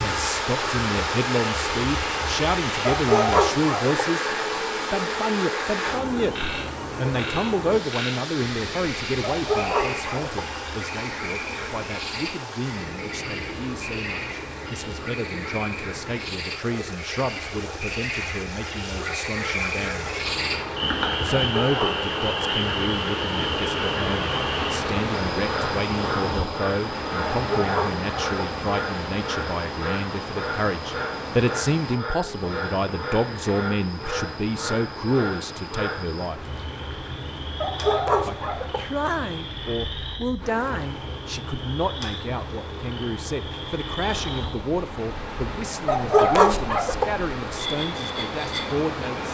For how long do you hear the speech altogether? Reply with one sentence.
You can hear the speech for 46 seconds altogether.